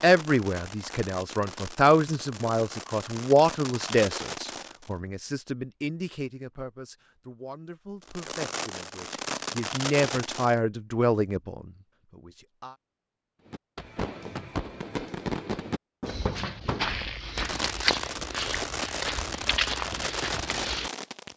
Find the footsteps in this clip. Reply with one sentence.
You can hear the footsteps from 16.1 to 20.9 s.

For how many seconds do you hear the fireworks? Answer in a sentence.
The fireworks can be heard for 15 seconds in total.